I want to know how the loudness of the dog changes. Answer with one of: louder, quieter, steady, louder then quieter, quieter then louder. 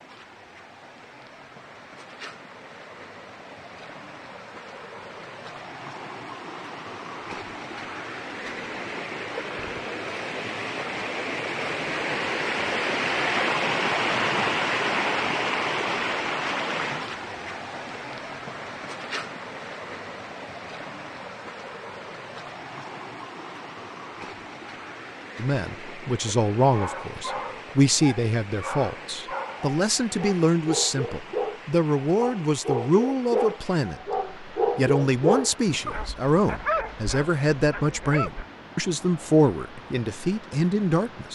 louder then quieter.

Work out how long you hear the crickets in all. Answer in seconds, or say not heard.
not heard.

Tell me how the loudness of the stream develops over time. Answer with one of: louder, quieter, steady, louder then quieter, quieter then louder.
louder then quieter.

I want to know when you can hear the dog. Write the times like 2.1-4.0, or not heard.
26.6-38.5.